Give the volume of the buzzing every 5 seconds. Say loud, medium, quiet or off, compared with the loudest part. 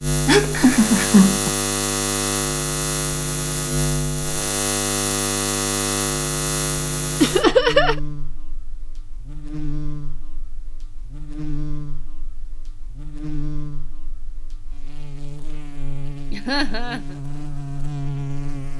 loud, loud, quiet, medium.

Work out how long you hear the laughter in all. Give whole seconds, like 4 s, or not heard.
3 s.